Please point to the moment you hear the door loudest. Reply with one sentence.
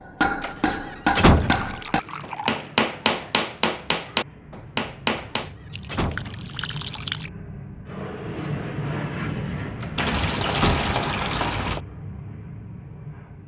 The volume of the door peaks at 1 second.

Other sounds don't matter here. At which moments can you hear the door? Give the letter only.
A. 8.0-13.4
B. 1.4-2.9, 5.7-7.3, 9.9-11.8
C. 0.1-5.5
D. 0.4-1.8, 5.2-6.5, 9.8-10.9
D.